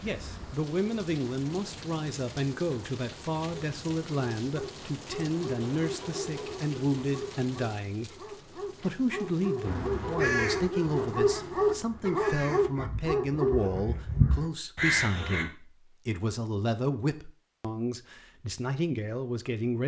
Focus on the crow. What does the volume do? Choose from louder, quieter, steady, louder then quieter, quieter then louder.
quieter then louder.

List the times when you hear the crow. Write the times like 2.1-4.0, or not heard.
9.7-15.4.